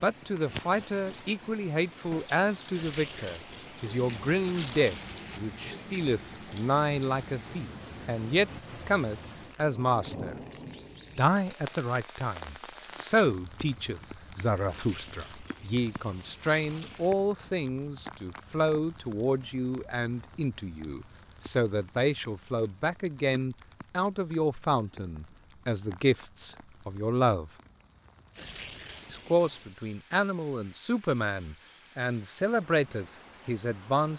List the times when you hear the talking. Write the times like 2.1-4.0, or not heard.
0.0-10.3, 11.2-27.5, 29.1-34.1.